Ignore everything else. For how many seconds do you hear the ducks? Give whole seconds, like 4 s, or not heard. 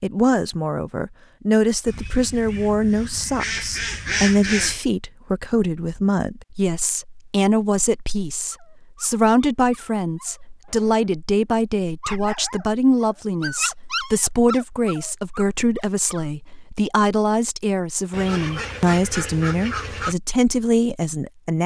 5 s.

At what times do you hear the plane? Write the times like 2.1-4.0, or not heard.
not heard.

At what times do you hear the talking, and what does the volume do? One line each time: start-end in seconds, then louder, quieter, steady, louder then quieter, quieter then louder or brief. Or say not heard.
0.0-21.6 steady.